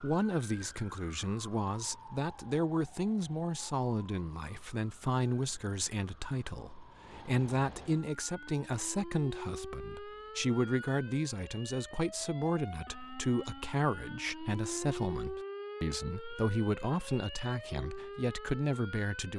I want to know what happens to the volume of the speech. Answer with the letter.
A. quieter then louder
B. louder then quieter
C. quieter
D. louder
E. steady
E.